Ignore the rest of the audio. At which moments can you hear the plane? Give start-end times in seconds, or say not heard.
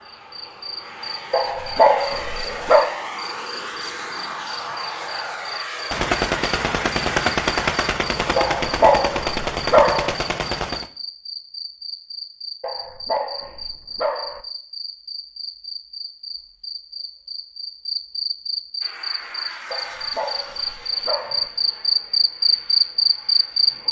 0.0-8.0, 18.8-23.8.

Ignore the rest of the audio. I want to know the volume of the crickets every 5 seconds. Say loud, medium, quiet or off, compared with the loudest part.
quiet, quiet, quiet, medium, loud.